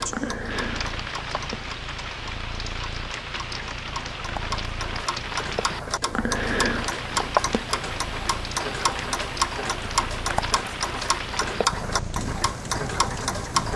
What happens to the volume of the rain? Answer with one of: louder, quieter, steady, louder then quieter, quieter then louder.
steady.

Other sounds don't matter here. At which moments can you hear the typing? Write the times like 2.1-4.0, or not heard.
not heard.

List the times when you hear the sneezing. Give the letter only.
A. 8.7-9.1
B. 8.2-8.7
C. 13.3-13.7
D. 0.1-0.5
D.